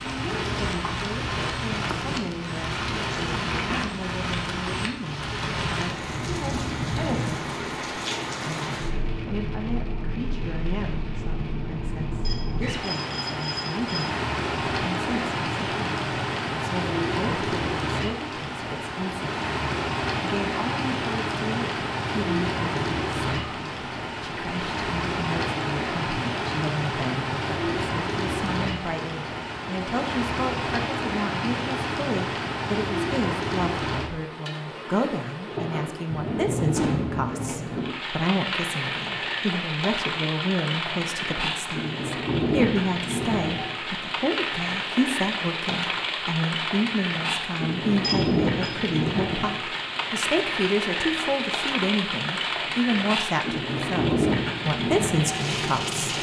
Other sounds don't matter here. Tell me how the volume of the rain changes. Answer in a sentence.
The volume of the rain stays about the same.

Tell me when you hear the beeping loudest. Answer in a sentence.
The loudest moment of the beeping is at 48 seconds.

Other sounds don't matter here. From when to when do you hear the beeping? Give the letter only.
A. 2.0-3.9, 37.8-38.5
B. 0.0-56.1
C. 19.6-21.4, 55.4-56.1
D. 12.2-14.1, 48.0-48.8
D.